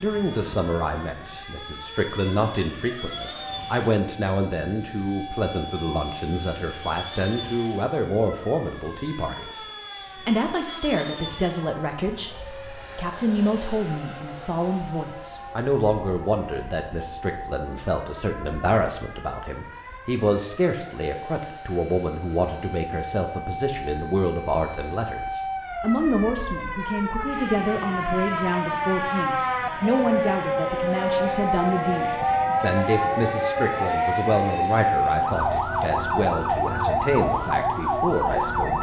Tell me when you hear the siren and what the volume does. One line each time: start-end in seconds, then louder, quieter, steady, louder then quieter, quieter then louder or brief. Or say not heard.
0.1-38.7 louder.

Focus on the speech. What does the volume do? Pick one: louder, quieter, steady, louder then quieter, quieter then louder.
steady.